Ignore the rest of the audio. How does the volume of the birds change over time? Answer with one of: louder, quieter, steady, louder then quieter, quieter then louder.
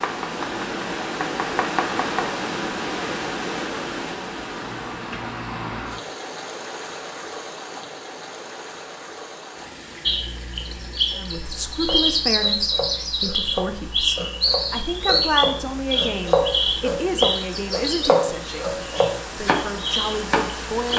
quieter.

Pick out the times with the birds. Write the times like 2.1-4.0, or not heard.
10.1-20.9.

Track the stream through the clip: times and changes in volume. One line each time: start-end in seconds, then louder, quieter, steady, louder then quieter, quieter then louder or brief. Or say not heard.
0.0-20.9 quieter then louder.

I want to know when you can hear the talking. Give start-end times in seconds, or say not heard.
11.2-20.9.